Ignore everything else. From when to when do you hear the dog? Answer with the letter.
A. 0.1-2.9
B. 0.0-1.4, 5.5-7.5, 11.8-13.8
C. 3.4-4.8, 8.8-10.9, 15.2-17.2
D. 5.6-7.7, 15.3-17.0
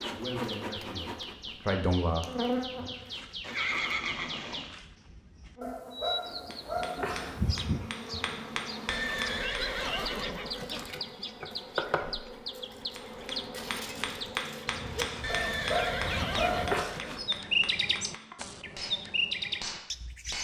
D.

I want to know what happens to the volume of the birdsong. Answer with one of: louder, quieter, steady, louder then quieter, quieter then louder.
louder.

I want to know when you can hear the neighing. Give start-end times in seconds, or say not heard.
3.4-4.8, 8.8-10.9, 15.2-17.2.